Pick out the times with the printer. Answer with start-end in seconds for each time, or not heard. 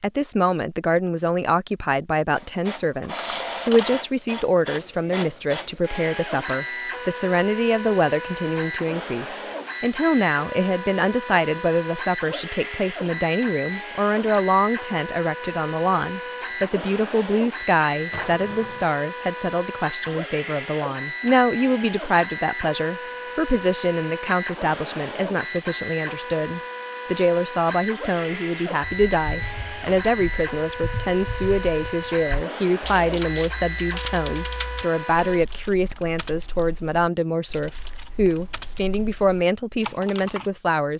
2.4-35.5.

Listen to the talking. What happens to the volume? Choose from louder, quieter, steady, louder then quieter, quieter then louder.
steady.